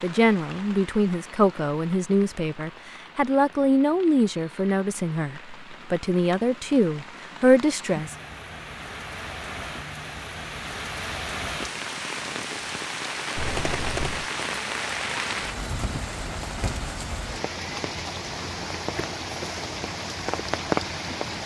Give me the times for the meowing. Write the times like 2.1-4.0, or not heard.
13.3-14.3.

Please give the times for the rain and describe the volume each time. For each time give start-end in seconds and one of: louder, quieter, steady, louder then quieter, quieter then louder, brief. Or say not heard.
0.0-21.4 louder.